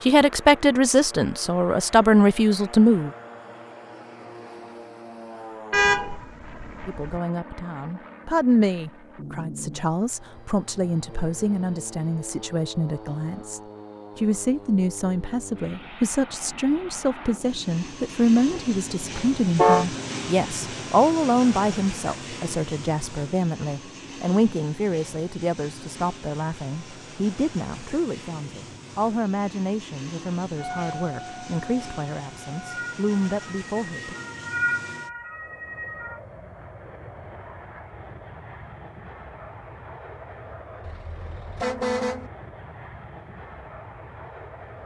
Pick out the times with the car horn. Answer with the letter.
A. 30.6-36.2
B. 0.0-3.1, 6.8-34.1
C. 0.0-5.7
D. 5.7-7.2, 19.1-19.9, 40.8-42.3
D.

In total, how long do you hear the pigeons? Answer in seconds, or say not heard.
not heard.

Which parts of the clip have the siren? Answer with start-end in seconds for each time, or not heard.
30.6-36.2.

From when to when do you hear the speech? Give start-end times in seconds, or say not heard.
0.0-3.1, 6.8-34.1.